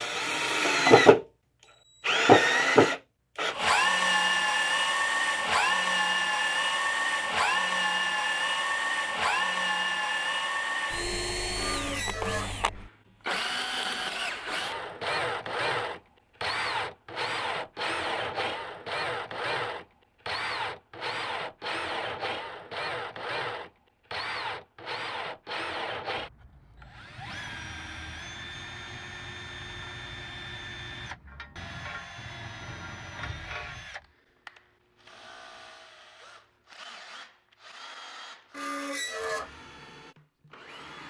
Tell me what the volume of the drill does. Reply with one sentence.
The volume of the drill goes down.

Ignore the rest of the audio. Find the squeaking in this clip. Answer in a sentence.
The squeaking can be heard from 11.6 to 12.5 s and from 38.5 to 39.5 s.